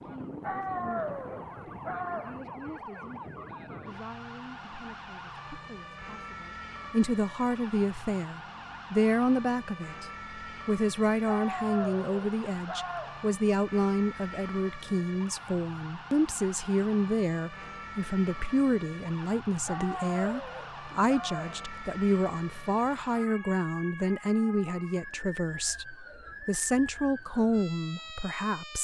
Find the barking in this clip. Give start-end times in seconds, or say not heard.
0.4-2.4, 11.2-13.2, 19.6-21.6.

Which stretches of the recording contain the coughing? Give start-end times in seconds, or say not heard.
not heard.